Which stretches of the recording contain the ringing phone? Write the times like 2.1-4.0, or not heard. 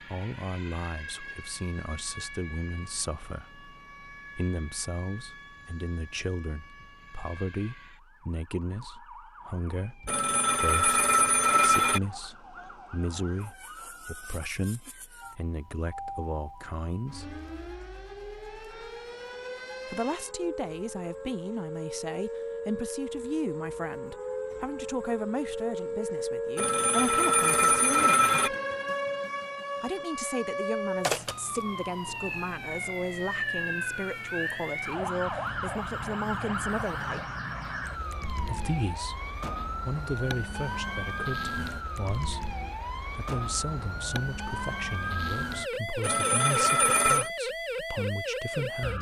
10.1-12.0, 26.6-28.5, 46.0-47.3.